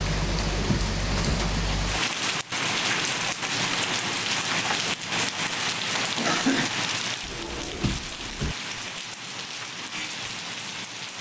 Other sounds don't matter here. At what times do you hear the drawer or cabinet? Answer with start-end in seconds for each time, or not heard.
0.1-1.4, 7.2-8.6.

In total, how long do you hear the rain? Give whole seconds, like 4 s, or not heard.
11 s.